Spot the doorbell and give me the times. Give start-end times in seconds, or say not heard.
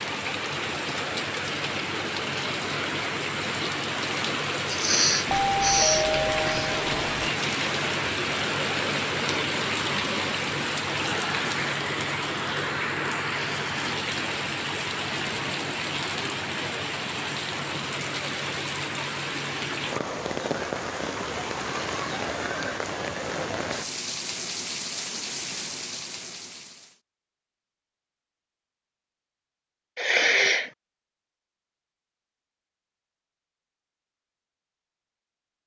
5.2-7.3.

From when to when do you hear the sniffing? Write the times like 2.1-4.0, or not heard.
4.7-6.8, 29.9-30.7.